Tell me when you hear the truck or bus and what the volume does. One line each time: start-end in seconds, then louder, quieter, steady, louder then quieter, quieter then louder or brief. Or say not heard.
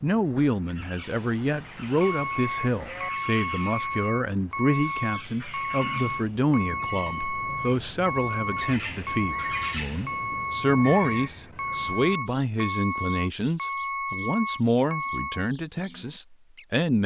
2.0-15.5 steady.